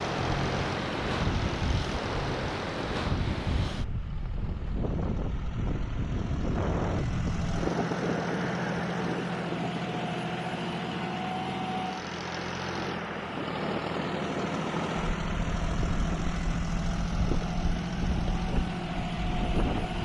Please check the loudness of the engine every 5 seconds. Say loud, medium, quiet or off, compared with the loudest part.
medium, loud, loud, loud.